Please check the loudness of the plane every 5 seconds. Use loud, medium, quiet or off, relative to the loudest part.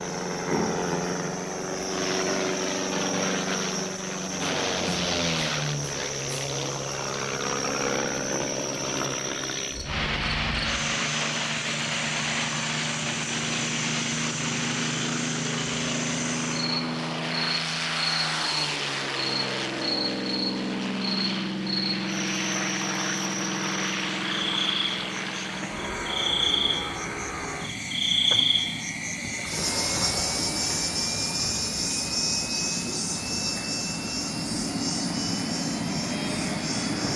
loud, loud, loud, loud, loud, medium, medium, loud.